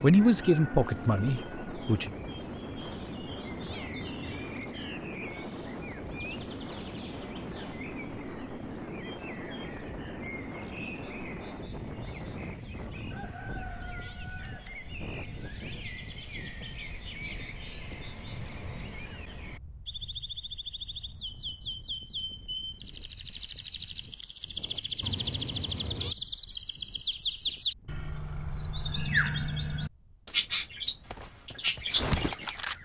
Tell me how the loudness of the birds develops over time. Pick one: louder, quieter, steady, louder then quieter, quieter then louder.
louder.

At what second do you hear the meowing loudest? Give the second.
26 s.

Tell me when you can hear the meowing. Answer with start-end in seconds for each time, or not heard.
2.6-4.7, 13.0-14.2, 25.0-26.1.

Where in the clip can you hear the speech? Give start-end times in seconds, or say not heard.
0.0-2.1.